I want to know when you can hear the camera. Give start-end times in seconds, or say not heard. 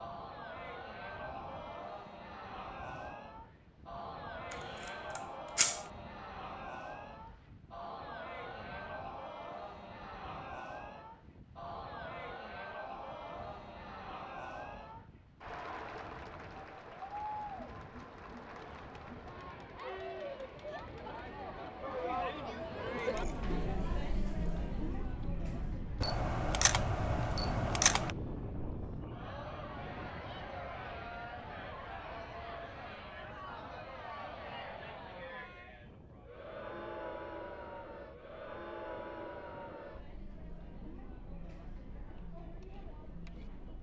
5.2-5.8, 26.0-28.1.